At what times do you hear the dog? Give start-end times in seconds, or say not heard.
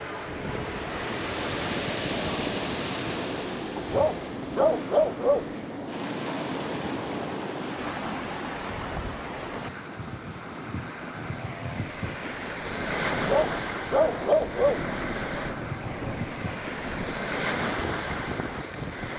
3.8-5.5, 13.1-14.8.